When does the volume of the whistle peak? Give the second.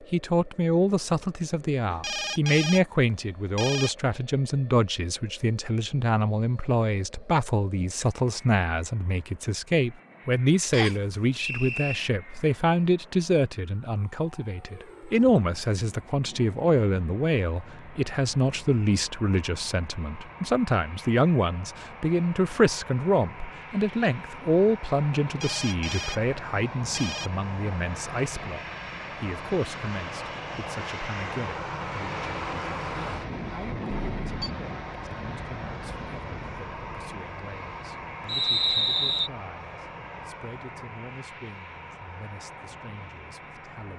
39 s.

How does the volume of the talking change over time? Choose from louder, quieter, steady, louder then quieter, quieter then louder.
quieter.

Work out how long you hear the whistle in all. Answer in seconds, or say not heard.
2 s.